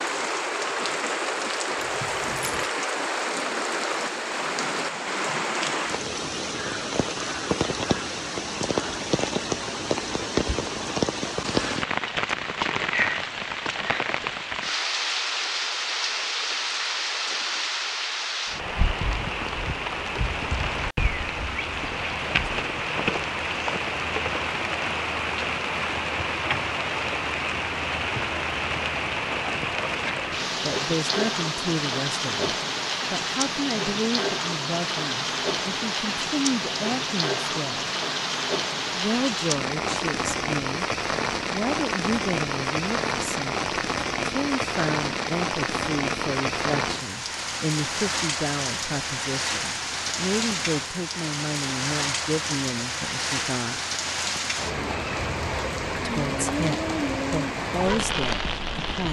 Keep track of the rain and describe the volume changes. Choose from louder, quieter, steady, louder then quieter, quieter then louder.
steady.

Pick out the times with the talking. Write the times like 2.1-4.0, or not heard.
30.6-37.9, 38.9-40.9, 41.5-53.8, 56.0-59.0.